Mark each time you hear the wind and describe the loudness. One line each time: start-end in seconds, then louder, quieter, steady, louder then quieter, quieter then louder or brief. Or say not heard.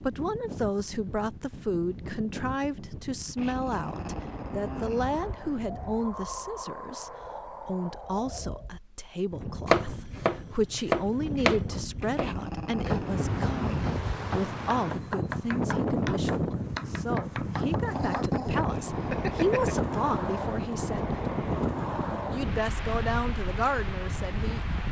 0.0-24.8 louder.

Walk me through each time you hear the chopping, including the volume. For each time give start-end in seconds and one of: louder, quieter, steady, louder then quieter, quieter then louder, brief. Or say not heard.
9.7-18.3 quieter.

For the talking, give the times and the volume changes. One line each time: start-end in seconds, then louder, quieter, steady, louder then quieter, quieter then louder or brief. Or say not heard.
0.0-21.2 steady
22.3-24.6 brief.